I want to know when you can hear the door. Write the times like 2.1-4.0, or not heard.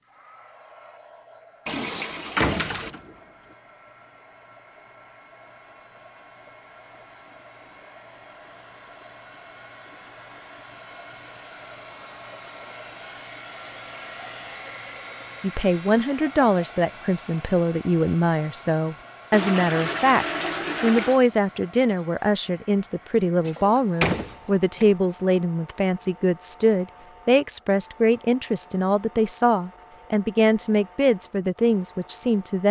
2.4-3.1, 23.4-24.9.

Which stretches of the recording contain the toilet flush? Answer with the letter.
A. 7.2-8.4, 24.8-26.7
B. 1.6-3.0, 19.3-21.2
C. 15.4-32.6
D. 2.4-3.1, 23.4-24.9
B.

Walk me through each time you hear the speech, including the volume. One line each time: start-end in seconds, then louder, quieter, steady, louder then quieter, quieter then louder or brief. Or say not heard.
15.4-32.6 steady.